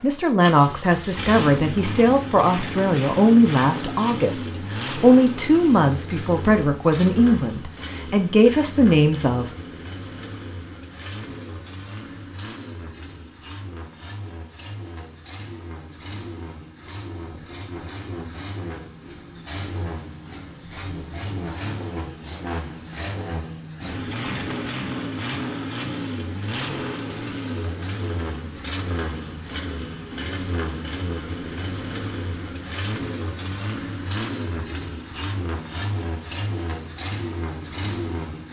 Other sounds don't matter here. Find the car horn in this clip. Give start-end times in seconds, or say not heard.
not heard.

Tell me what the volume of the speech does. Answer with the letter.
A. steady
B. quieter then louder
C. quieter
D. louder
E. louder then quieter
A.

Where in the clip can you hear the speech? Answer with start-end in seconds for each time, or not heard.
0.0-9.4.